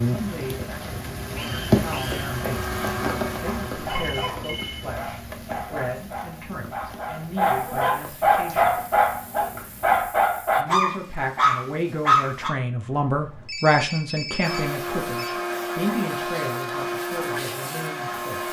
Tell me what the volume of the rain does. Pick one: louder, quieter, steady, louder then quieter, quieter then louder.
quieter.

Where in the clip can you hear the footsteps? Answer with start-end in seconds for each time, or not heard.
not heard.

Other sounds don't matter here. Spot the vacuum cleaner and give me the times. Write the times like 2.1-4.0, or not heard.
0.0-4.0, 14.4-18.4.